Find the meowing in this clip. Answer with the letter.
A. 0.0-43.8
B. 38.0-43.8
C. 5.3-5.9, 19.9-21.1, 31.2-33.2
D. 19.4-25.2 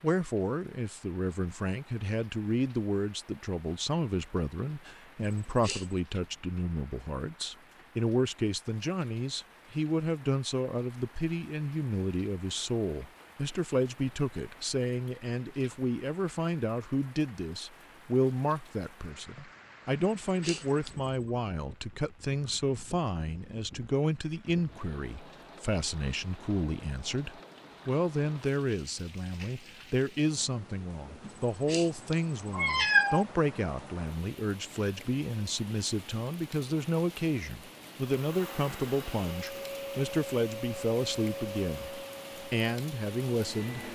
C.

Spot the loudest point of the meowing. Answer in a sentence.
The volume of the meowing peaks at 33 seconds.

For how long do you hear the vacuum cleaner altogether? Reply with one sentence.
The vacuum cleaner can be heard for 6 seconds in total.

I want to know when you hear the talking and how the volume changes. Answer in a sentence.
The talking can be heard from 0.0 to 43.8 s, at a steady volume.